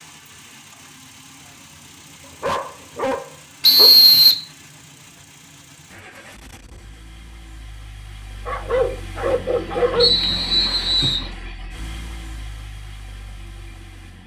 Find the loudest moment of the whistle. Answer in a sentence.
The volume of the whistle peaks at 4 seconds.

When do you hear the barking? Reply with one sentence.
You can hear the barking from 2.4 to 4.0 s and from 8.4 to 10.1 s.